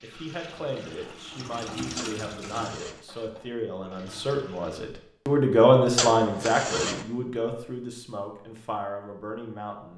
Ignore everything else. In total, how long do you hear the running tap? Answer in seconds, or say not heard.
5 s.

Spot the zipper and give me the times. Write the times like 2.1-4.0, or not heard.
1.9-3.0, 6.0-7.0.